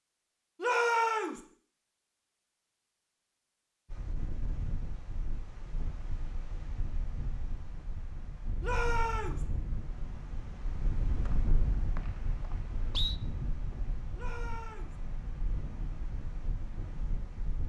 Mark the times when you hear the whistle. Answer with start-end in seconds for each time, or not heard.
11.2-13.2.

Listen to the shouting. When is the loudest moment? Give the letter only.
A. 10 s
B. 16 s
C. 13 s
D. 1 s
D.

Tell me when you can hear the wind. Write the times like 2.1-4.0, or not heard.
3.9-17.6.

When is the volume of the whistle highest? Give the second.
13 s.